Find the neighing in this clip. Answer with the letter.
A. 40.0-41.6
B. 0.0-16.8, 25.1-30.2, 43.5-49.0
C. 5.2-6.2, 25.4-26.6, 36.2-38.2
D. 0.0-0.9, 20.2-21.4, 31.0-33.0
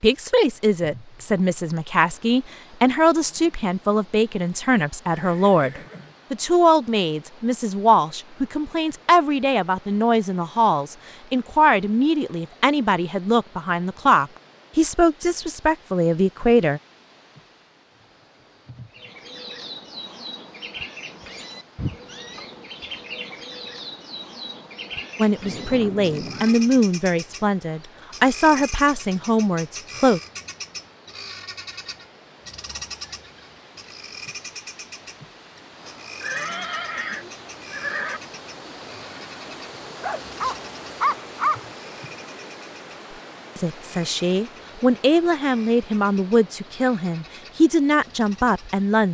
C.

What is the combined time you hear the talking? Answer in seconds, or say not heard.
27 s.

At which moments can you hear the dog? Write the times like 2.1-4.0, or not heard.
40.0-41.6.